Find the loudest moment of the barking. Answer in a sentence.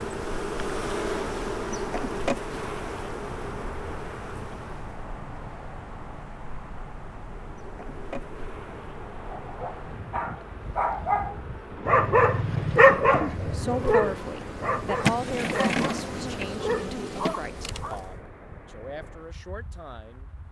The loudest moment of the barking is at 13 seconds.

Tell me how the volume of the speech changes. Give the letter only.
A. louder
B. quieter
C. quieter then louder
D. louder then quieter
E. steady
B.